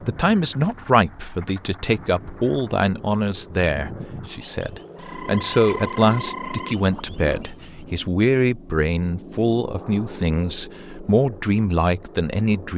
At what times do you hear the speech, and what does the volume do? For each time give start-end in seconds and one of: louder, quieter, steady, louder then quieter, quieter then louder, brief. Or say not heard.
0.1-12.7 steady.